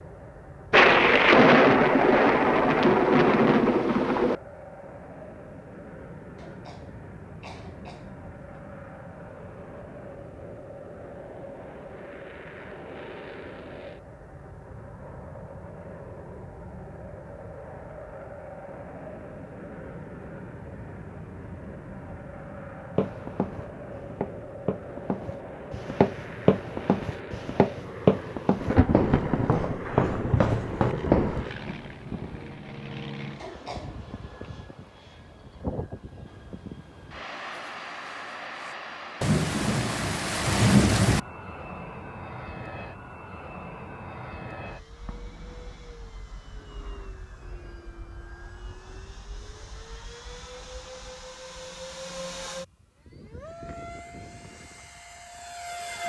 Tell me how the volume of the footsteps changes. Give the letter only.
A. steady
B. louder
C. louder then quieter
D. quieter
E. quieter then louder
B.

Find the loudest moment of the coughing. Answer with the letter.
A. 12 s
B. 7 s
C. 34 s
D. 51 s
C.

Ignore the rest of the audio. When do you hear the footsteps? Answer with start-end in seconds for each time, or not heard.
22.9-31.4.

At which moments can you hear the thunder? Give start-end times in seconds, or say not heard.
0.7-4.3, 28.6-32.4, 39.2-41.2.